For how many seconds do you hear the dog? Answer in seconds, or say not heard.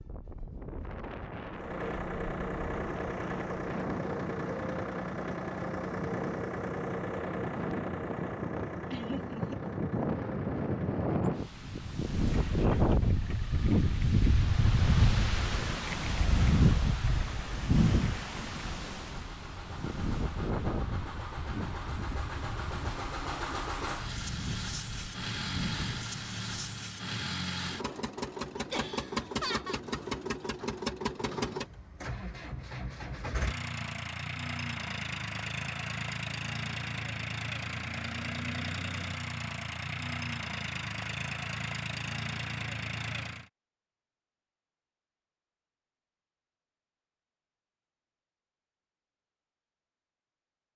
not heard.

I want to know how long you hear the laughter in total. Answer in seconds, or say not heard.
2 s.